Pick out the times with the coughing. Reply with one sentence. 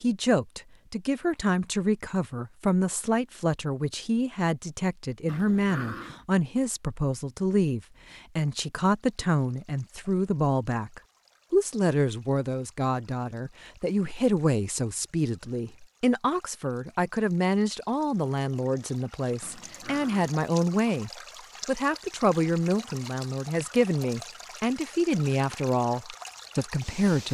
You can't hear the coughing here.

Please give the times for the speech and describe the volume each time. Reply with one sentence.
You can hear the speech from 0.0 to 27.3 s, at a steady volume.